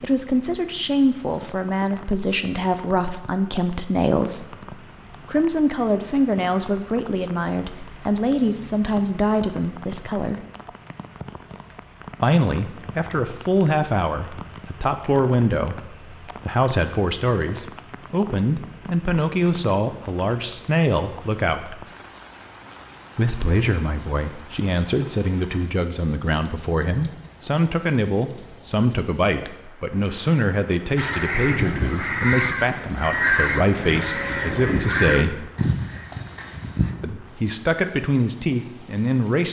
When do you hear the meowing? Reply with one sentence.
The meowing can't be heard in this clip.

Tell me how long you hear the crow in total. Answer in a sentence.
You can hear the crow for 6 seconds altogether.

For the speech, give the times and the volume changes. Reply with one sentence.
The speech can be heard from 0.0 to 10.4 s, at a steady volume; from 12.2 to 21.9 s, at a steady volume; from 23.1 to 35.5 s, at a steady volume; and briefly from 37.0 to 39.4 s.